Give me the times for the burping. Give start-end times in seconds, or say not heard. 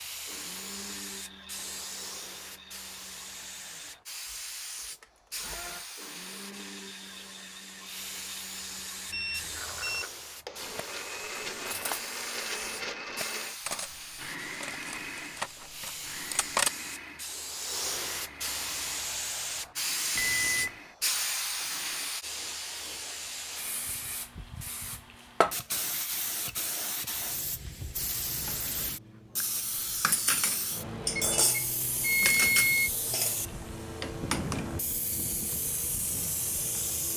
not heard.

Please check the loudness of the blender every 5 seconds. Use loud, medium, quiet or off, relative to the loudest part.
medium, medium, loud, medium, medium, off, off, off.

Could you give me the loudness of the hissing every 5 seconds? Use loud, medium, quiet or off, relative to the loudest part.
medium, medium, medium, loud, loud, loud, loud, loud.